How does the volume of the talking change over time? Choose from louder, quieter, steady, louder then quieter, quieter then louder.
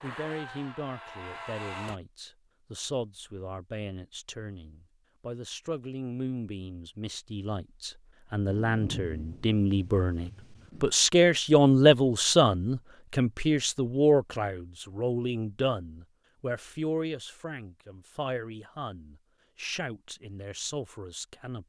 louder then quieter.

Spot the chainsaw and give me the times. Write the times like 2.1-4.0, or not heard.
0.0-2.0.